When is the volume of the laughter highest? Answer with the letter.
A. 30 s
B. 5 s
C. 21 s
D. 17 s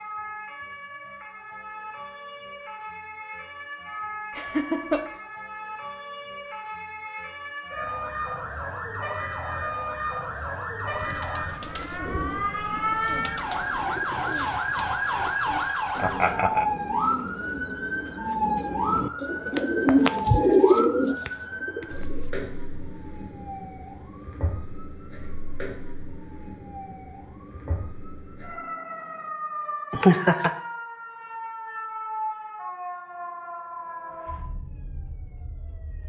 A.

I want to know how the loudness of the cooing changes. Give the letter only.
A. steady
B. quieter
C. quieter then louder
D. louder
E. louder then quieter
D.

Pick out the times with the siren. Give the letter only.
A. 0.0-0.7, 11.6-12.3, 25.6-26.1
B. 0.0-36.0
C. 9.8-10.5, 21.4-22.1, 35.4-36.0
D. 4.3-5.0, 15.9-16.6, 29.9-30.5
B.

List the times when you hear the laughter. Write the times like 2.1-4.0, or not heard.
4.3-5.0, 15.9-16.6, 29.9-30.5.